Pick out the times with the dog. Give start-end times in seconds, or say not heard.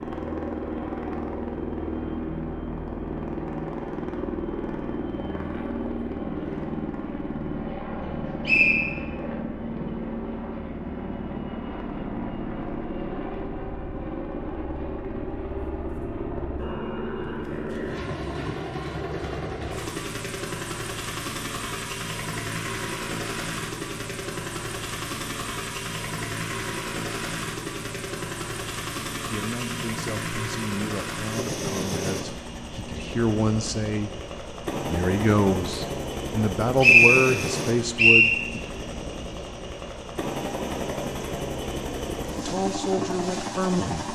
not heard.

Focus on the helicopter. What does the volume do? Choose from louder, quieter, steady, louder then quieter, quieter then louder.
steady.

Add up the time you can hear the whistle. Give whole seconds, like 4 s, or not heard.
2 s.